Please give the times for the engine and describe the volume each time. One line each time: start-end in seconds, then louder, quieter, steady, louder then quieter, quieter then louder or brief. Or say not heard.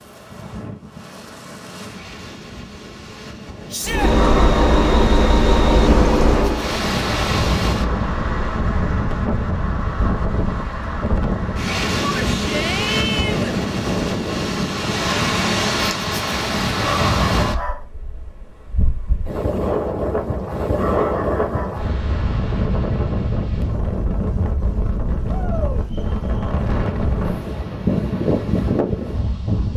3.9-8.7 quieter.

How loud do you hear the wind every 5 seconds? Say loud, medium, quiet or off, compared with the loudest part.
quiet, loud, loud, loud, loud, loud.